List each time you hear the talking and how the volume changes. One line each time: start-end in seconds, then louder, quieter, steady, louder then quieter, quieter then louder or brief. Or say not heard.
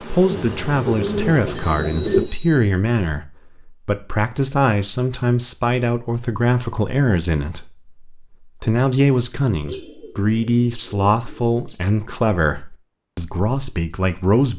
0.0-14.5 steady.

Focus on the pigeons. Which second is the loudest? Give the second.
2 s.